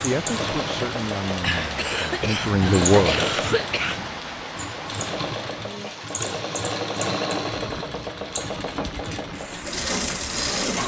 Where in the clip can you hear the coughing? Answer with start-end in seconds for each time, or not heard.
1.4-4.1.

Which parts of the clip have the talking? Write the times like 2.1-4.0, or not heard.
0.0-3.5.